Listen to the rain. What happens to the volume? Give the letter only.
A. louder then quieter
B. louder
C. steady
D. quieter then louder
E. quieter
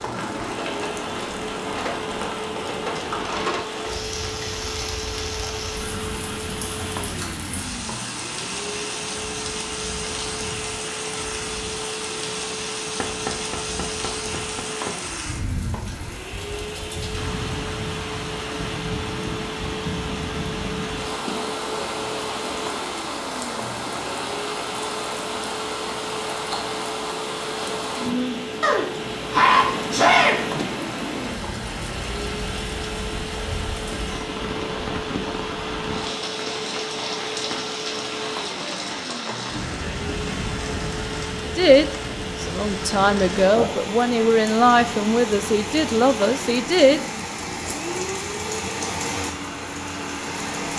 C.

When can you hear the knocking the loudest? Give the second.
13 s.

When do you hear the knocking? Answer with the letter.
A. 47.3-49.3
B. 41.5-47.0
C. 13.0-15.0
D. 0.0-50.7
C.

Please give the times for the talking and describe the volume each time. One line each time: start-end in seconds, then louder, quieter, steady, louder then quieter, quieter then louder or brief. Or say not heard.
41.5-47.0 louder.